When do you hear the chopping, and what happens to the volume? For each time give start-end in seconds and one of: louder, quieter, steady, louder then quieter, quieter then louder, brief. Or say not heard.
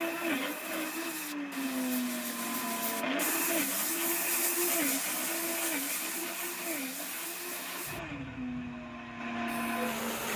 not heard.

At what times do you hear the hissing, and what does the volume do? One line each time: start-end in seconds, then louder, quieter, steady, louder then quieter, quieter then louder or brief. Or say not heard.
0.0-10.3 louder then quieter.